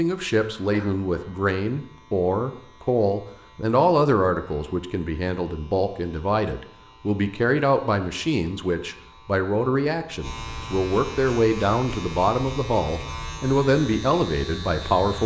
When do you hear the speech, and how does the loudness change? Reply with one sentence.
You can hear the speech from 0.0 to 15.2 s, at a steady volume.